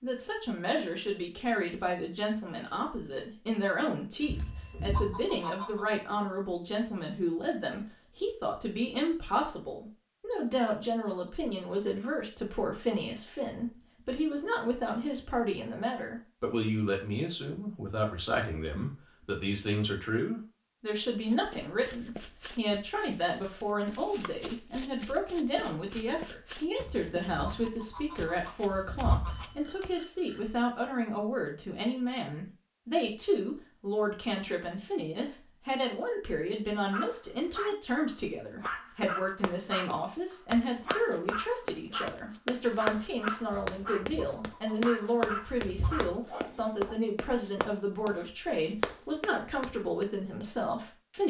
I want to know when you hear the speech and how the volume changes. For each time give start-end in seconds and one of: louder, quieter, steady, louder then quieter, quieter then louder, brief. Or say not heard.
0.0-51.2 steady.